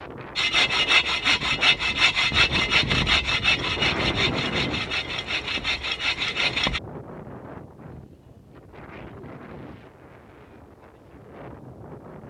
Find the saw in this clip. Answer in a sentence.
The saw can be heard from 0.3 to 6.8 s.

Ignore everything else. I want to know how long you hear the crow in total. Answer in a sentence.
The crow can't be heard in this clip.